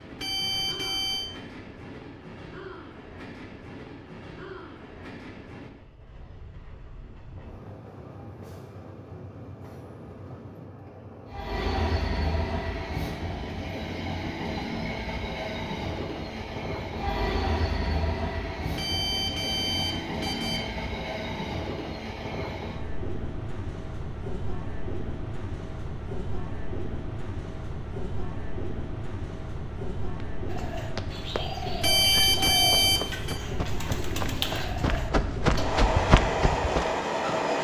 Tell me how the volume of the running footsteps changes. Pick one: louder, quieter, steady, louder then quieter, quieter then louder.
louder.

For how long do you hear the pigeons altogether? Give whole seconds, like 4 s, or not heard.
5 s.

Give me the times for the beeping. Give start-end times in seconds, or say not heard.
0.1-1.3, 18.8-20.6, 31.8-33.4.